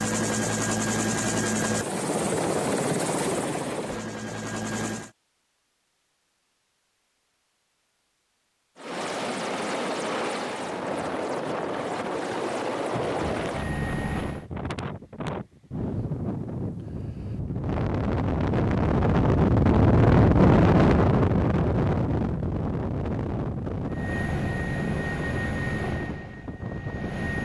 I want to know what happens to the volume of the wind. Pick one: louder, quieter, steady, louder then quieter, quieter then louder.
louder then quieter.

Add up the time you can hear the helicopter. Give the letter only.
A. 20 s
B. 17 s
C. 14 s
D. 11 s
C.